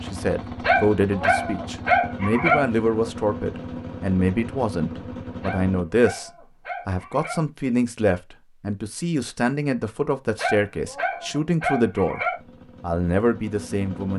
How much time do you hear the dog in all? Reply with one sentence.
The dog can be heard for 6 seconds in total.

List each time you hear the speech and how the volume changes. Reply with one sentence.
You can hear the speech from 0.0 to 12.2 s, at a steady volume; and briefly from 12.8 to 14.1 s.